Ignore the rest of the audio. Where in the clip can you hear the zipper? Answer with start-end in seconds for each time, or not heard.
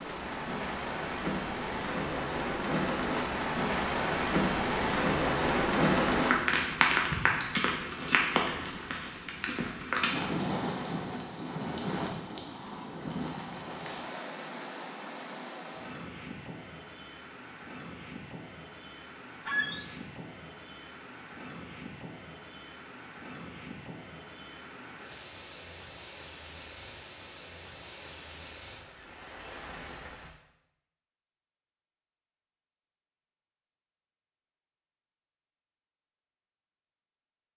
not heard.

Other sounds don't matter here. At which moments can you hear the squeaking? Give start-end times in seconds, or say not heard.
19.4-19.9.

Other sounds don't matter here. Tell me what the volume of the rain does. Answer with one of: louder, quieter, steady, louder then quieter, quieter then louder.
quieter.